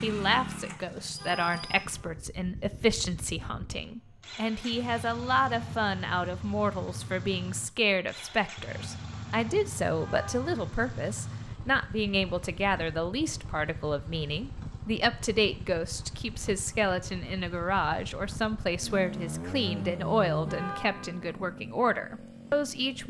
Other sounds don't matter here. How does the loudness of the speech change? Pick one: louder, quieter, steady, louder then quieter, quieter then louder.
steady.